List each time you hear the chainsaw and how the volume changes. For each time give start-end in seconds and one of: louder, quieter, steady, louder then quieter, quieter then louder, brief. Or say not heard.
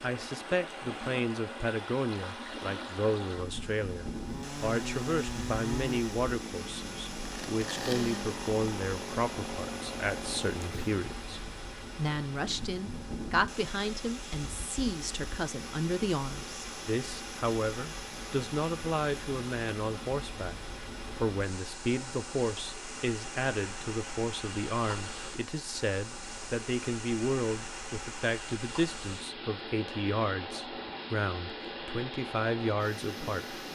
4.1-10.9 steady.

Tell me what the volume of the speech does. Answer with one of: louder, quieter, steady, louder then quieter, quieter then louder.
steady.